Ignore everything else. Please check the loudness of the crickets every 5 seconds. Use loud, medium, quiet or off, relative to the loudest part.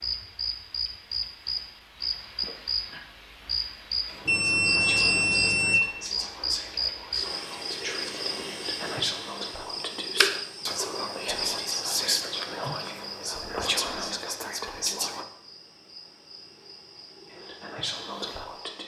loud, loud, loud, quiet.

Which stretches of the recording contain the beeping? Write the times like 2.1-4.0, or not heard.
4.2-5.8.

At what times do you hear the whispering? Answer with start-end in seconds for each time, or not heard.
4.0-15.2, 17.2-18.8.